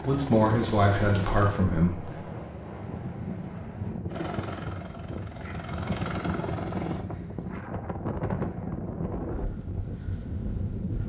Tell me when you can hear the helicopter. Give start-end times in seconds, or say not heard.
0.0-1.6, 4.0-7.0.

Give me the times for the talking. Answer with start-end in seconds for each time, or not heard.
0.0-2.2.